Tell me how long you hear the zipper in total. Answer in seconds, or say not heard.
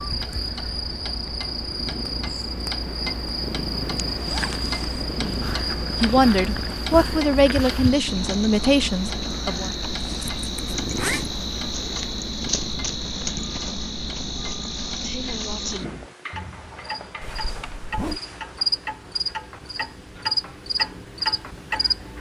3 s.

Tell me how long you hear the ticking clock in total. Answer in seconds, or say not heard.
22 s.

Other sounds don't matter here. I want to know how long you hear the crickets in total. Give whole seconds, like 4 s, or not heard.
22 s.